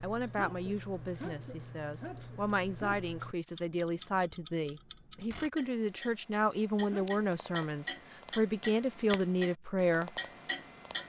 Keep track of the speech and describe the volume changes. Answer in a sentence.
The loudness of the speech goes up.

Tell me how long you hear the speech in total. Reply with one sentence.
You can hear the speech for 10 seconds altogether.